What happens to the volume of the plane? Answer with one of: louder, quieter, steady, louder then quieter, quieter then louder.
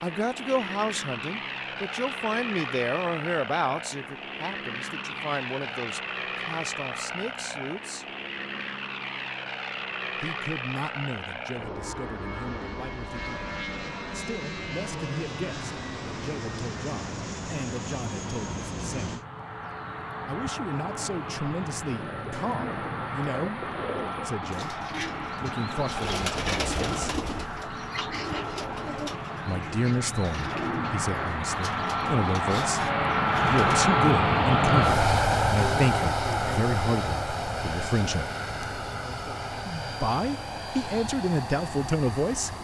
louder.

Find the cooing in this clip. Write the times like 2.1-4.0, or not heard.
21.9-33.9.